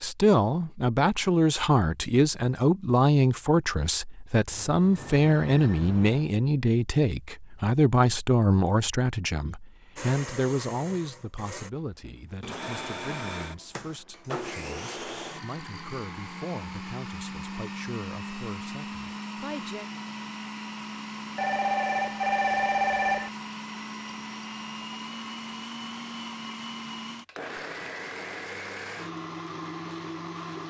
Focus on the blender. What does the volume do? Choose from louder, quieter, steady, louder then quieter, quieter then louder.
steady.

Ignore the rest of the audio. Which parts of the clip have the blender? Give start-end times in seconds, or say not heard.
9.9-30.6.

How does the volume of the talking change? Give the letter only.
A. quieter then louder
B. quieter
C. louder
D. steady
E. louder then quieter
B.